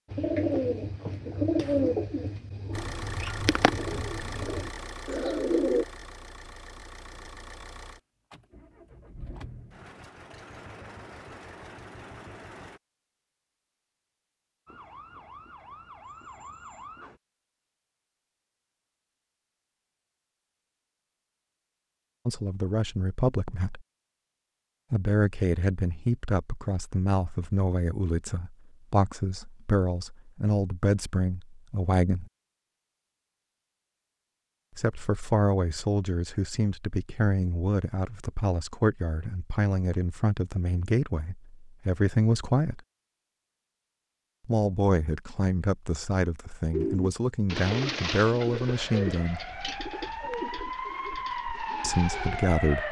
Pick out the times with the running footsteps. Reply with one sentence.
You can't hear the running footsteps here.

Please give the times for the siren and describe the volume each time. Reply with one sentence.
The siren can be heard briefly from 14.7 to 17.2 s; and from 48.5 to 52.8 s, getting louder.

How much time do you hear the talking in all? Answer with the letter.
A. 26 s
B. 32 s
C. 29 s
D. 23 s
D.